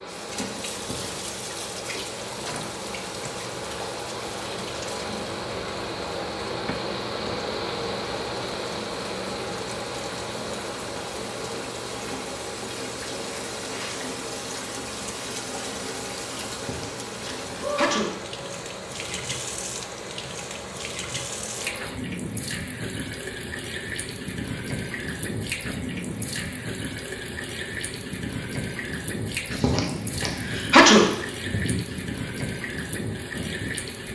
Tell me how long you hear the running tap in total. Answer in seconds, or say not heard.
34 s.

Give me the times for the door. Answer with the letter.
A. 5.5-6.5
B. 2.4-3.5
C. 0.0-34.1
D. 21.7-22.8
B.